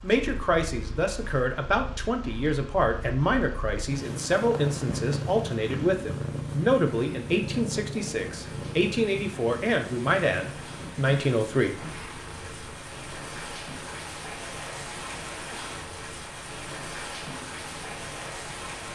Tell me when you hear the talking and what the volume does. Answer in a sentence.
The talking can be heard from 0.0 to 11.8 s, at a steady volume.